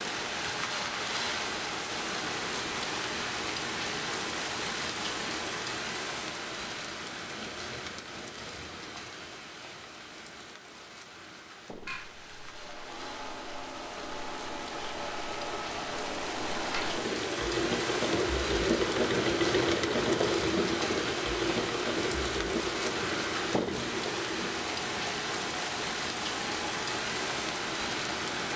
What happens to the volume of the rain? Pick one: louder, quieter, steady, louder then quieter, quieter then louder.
quieter then louder.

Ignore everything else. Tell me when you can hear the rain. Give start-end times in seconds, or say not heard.
0.0-28.5.